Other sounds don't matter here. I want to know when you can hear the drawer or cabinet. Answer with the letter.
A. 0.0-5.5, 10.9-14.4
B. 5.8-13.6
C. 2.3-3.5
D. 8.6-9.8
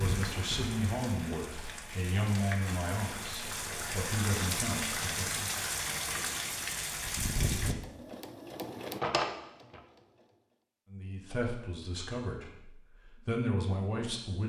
D.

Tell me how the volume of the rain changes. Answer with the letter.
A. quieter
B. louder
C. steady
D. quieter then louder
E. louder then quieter
B.